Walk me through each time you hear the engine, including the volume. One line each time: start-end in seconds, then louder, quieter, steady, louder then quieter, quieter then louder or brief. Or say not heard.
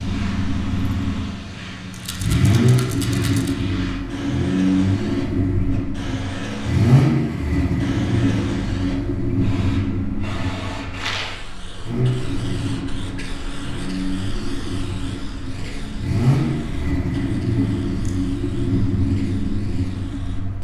0.0-20.5 quieter then louder.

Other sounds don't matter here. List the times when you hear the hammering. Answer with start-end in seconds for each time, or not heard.
not heard.